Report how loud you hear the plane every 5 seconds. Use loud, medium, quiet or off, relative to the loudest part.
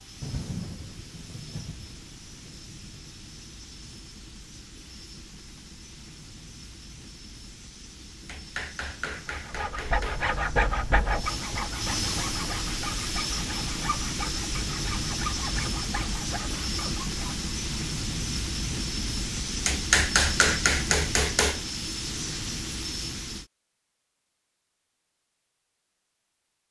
quiet, quiet, loud, loud, loud, off.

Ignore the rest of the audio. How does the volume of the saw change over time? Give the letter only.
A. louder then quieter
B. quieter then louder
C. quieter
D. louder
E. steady
C.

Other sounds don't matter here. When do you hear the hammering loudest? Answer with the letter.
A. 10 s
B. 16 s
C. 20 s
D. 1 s
C.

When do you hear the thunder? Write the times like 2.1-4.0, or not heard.
0.2-3.0.